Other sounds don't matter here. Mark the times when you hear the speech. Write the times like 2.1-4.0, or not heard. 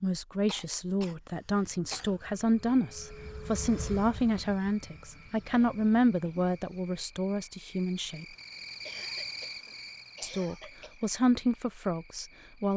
0.0-8.2, 10.2-12.7.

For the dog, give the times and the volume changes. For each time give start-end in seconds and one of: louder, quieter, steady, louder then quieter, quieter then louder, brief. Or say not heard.
not heard.